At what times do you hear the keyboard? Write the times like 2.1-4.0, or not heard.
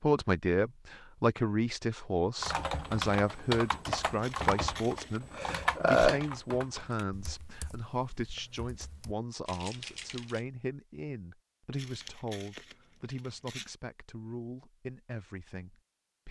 2.4-10.4.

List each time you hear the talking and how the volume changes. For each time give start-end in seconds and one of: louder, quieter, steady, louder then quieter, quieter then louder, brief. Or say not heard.
0.0-16.2 quieter.